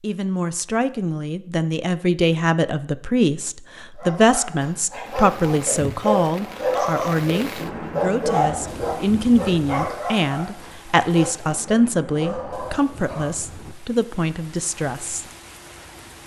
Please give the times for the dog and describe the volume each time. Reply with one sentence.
The dog can be heard from 4.0 to 13.3 s, getting louder then quieter.